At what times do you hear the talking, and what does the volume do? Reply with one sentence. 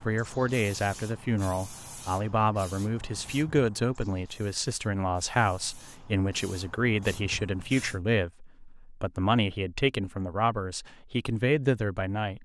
You can hear the talking from 0.0 to 12.4 s, at a steady volume.